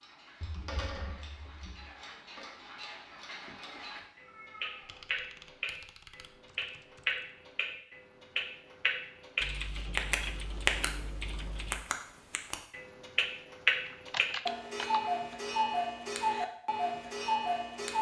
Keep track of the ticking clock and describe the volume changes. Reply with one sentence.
The loudness of the ticking clock goes up.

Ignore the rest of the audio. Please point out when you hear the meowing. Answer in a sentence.
The meowing can be heard from 3.6 to 5.0 s.